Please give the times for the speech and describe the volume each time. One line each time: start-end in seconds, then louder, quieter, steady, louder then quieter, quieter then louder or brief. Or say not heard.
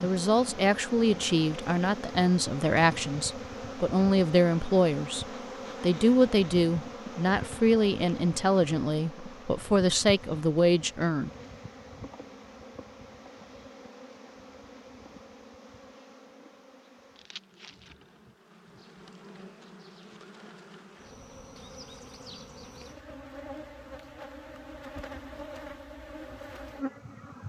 0.0-11.3 steady.